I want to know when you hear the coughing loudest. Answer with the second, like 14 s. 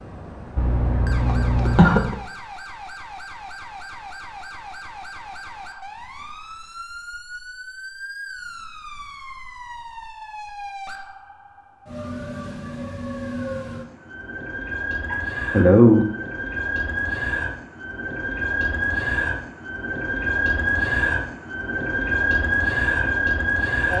16 s.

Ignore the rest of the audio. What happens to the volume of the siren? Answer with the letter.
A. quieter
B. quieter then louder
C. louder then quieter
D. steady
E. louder
E.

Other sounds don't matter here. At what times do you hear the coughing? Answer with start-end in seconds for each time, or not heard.
0.6-2.1, 15.1-16.1.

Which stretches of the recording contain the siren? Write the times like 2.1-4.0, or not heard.
0.0-23.9.